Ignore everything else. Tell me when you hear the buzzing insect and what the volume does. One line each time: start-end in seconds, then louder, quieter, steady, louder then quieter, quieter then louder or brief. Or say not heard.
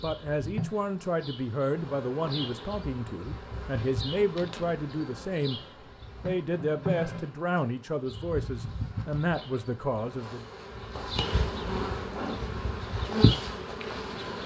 0.0-14.4 louder.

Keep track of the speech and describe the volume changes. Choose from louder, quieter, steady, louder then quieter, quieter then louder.
steady.